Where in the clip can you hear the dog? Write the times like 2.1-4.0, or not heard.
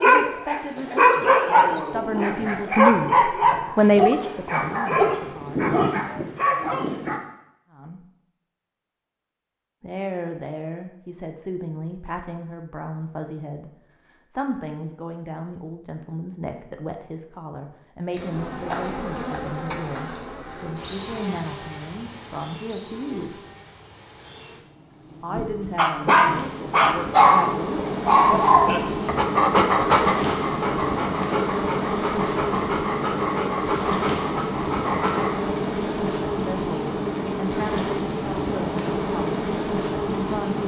0.0-7.2, 25.8-35.4.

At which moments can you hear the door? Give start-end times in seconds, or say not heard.
not heard.